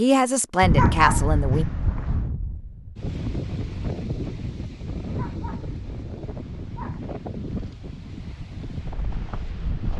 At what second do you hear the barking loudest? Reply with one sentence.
The loudest moment of the barking is at 1 second.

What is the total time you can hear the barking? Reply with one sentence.
You can hear the barking for 4 seconds altogether.